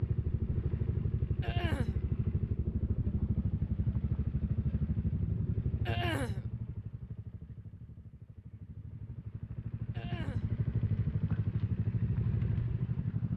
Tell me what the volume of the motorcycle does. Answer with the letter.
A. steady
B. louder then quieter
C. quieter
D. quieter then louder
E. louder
D.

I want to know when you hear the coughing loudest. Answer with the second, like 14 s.
6 s.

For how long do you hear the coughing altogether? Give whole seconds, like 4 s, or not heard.
2 s.